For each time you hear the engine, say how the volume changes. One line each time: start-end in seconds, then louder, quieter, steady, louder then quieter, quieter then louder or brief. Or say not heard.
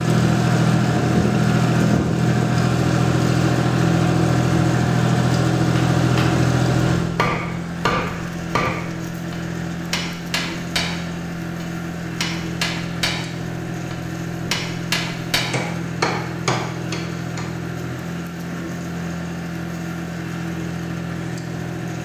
0.0-22.0 quieter.